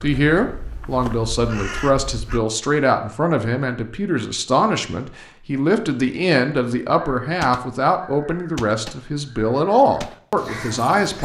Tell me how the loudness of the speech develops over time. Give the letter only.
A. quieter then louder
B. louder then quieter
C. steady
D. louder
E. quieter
C.